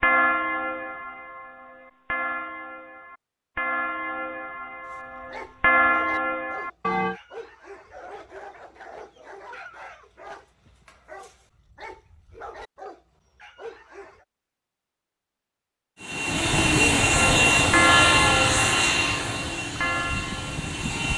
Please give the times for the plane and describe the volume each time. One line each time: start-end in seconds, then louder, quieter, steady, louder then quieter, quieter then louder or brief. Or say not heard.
16.0-21.1 quieter.